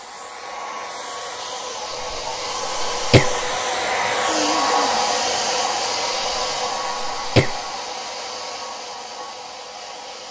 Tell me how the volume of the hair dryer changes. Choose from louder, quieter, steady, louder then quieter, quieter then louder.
louder then quieter.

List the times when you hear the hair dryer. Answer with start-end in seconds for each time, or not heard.
0.0-10.2.